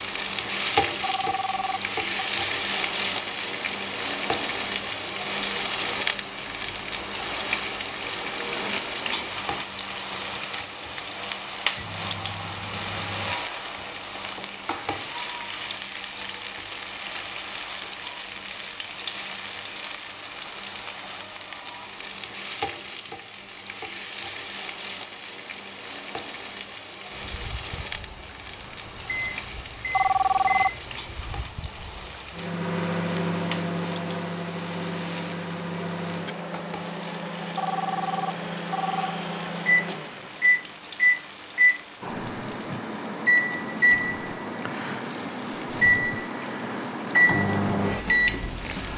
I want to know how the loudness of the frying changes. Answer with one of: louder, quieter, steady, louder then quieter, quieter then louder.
quieter.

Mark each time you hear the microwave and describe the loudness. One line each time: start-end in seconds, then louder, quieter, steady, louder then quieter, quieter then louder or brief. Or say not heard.
11.8-13.3 brief
27.1-48.9 louder.